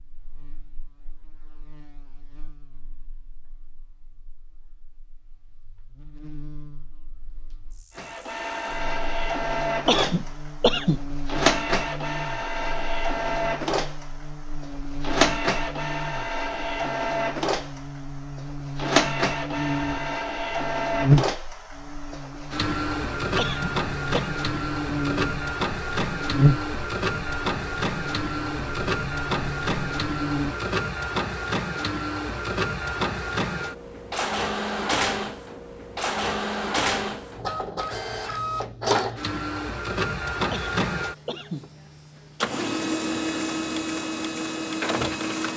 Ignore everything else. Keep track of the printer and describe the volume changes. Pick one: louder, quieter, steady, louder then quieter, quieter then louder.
steady.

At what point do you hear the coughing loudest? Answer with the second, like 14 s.
11 s.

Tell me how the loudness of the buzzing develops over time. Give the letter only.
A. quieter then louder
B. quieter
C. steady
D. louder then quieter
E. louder
E.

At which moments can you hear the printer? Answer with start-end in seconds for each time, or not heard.
8.0-45.5.